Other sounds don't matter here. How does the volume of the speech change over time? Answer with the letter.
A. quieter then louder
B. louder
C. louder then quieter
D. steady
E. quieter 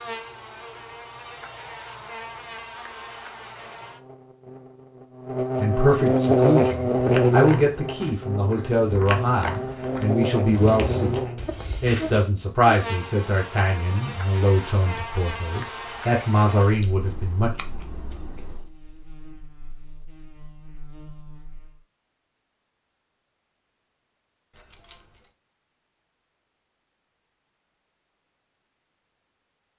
D.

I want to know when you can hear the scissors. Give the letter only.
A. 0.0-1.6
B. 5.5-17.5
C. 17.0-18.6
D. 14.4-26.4
C.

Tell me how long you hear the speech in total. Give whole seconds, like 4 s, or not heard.
12 s.